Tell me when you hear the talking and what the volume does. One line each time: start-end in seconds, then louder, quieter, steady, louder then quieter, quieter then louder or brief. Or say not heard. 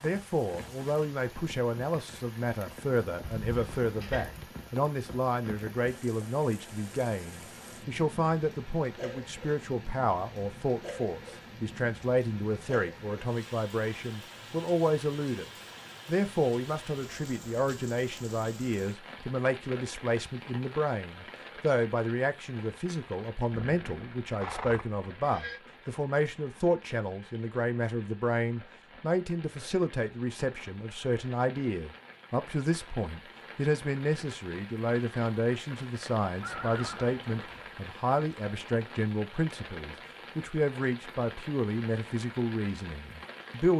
0.0-43.7 steady.